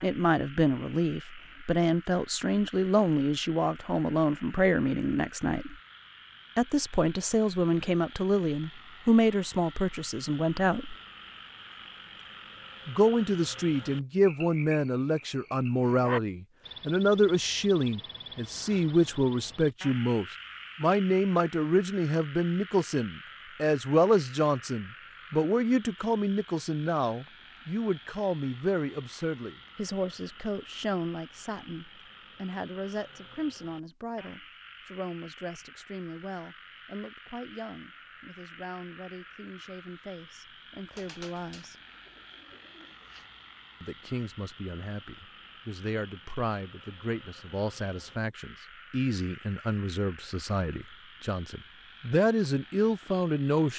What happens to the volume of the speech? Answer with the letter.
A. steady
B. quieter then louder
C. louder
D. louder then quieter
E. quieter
B.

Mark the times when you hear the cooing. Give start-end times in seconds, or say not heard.
40.9-43.3.